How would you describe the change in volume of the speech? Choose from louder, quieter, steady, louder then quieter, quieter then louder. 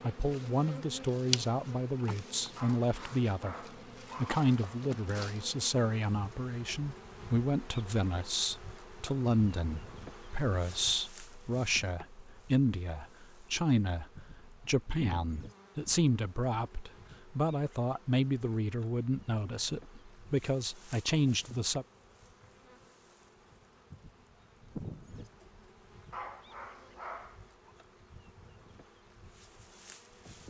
steady.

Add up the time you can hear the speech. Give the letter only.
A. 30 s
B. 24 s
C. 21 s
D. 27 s
C.